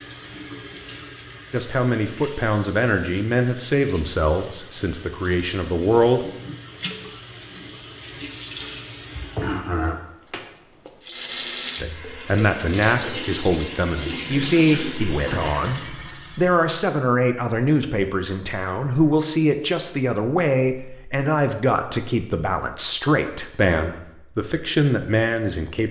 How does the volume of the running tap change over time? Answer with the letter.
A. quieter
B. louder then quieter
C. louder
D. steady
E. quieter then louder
C.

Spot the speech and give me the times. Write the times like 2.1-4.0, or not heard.
1.5-6.2, 11.8-25.8.